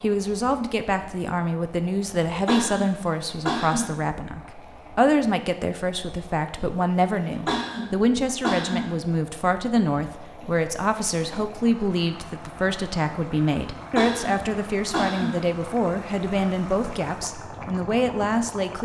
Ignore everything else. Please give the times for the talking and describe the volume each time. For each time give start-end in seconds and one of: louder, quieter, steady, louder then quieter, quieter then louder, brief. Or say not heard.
0.0-18.8 steady.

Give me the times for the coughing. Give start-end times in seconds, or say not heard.
2.5-4.0, 7.5-9.0, 13.9-15.5.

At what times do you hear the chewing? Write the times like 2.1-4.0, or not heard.
not heard.